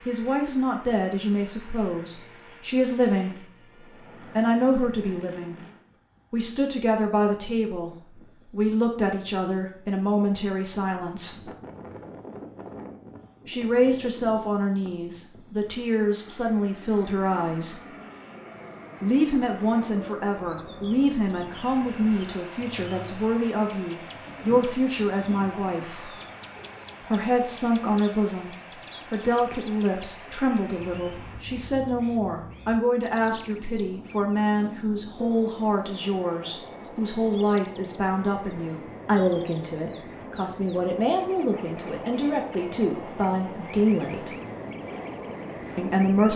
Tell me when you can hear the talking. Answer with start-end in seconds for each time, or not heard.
0.0-5.5, 6.3-11.4, 13.4-17.8, 19.0-26.1, 27.0-44.3, 45.8-46.3.